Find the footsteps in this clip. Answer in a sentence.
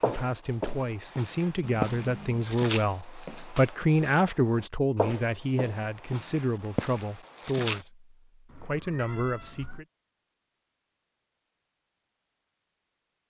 The footsteps can be heard from 0.0 to 7.8 s.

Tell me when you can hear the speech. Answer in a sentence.
You can hear the speech from 0.0 to 9.8 s.